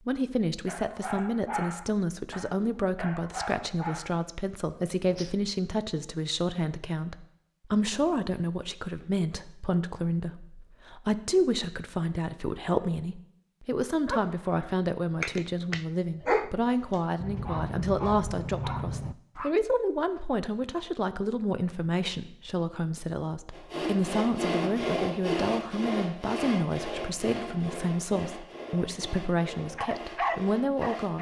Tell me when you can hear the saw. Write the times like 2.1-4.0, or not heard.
23.5-31.1.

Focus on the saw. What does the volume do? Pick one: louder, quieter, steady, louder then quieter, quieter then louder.
quieter.